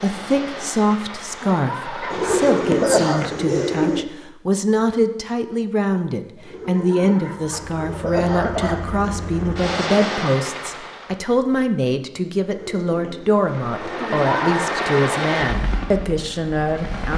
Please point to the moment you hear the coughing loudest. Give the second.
3 s.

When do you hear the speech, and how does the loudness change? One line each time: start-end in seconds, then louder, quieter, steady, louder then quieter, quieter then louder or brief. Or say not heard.
0.0-17.1 steady.